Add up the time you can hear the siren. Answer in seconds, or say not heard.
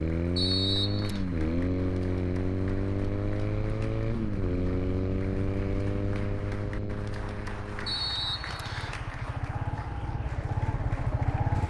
not heard.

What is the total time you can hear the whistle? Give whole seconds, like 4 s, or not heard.
2 s.